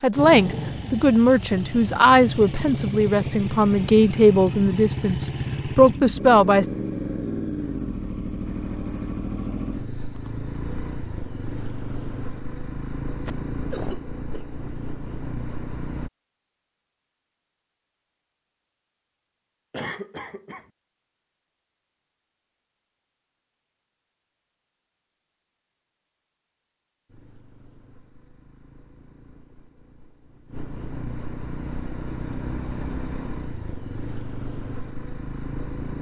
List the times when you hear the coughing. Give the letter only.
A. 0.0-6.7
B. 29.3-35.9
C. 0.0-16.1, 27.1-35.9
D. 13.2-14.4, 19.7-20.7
D.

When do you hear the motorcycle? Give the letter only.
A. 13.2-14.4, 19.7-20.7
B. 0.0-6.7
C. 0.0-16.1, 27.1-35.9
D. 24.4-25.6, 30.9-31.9
C.